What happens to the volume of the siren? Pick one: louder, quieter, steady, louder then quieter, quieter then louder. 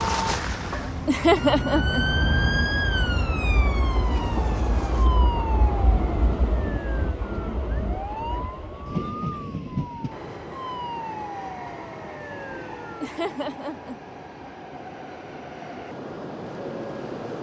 quieter.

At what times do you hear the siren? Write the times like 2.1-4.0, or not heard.
0.0-13.1.